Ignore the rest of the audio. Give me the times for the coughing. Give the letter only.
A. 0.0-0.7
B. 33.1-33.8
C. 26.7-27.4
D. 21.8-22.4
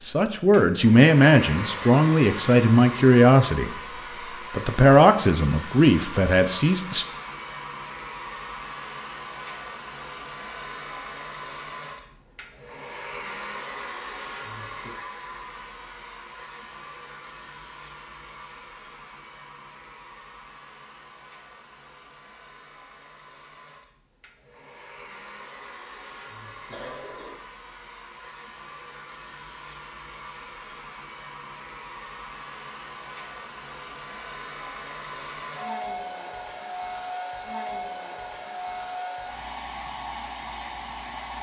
C.